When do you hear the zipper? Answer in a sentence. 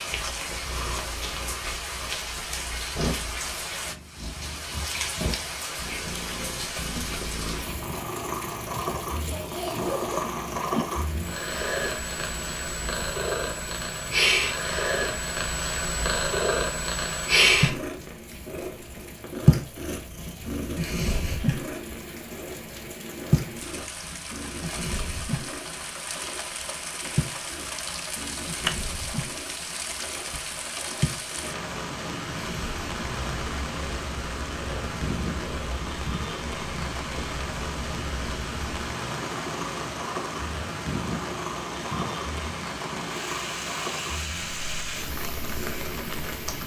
The zipper can be heard from 9.2 to 10.8 s.